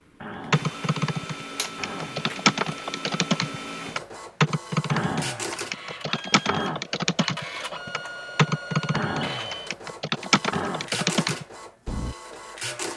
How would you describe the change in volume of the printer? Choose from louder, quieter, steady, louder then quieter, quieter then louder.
steady.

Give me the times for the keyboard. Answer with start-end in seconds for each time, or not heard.
0.5-12.2.